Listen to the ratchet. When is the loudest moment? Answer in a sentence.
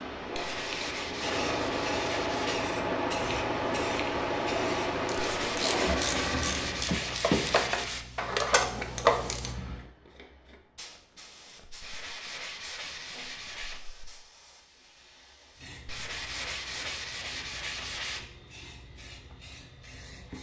The loudest moment of the ratchet is at 9 seconds.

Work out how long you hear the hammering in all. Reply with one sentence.
The hammering can't be heard in this clip.